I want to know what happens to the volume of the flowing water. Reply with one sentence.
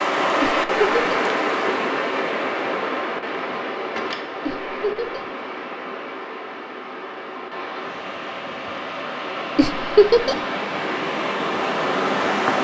The loudness of the flowing water goes down, then up.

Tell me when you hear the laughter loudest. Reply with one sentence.
The volume of the laughter peaks at 10 seconds.